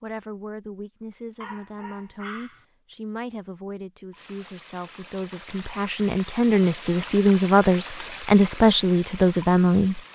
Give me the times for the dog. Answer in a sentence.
You can hear the dog from 1.4 to 2.6 s.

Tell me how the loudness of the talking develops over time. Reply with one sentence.
The loudness of the talking goes up.